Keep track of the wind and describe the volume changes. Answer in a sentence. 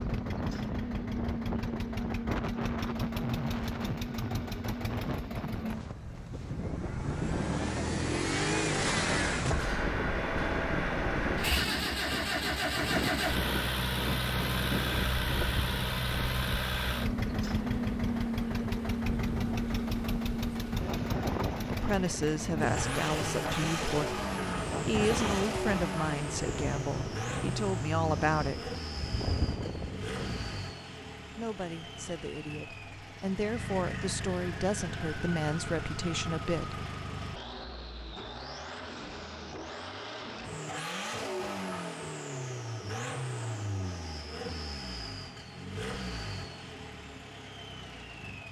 The volume of the wind stays about the same.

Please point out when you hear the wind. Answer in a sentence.
The wind can be heard from 0.0 to 30.6 s.